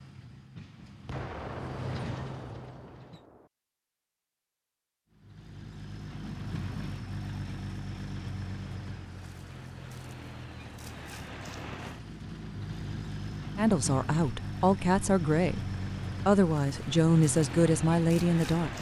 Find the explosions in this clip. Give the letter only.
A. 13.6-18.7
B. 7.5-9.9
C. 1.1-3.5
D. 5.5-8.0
C.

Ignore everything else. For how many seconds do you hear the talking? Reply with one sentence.
You can hear the talking for 5 seconds altogether.